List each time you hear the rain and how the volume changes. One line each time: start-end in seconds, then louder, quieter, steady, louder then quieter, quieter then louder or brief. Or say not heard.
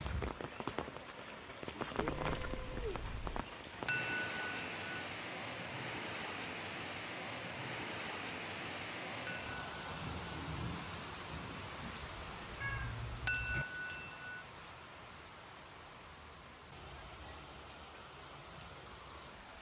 0.0-19.5 quieter.